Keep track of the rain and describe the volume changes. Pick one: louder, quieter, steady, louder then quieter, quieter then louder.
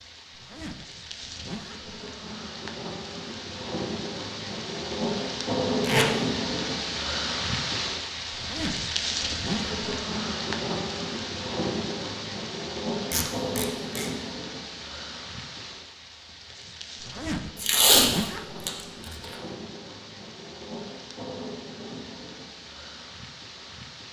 louder then quieter.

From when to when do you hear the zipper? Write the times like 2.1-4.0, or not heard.
0.3-1.9, 8.3-9.8, 17.0-19.4.